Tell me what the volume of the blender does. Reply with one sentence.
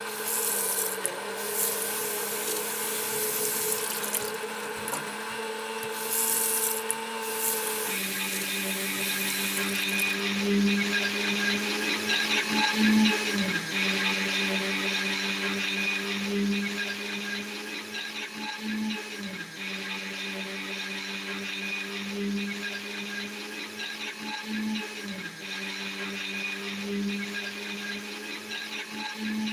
The loudness of the blender goes up, then down.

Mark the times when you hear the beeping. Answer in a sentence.
The beeping can't be heard in this clip.